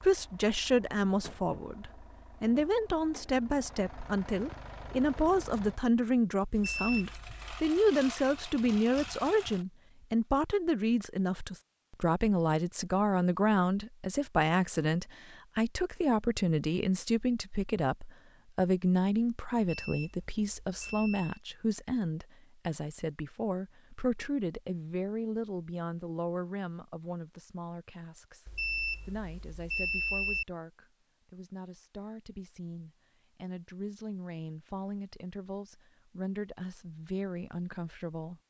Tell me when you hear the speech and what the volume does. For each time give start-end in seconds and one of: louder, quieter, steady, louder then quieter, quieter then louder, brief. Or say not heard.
0.0-38.4 quieter.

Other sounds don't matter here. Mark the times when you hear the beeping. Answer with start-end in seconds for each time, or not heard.
6.5-7.7, 19.7-21.4, 28.4-30.4.